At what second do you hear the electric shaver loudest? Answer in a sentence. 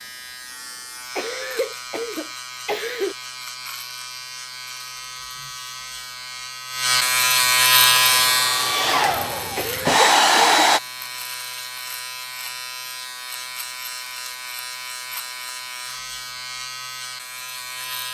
The volume of the electric shaver peaks at 8 seconds.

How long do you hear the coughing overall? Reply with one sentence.
You can hear the coughing for 3 seconds altogether.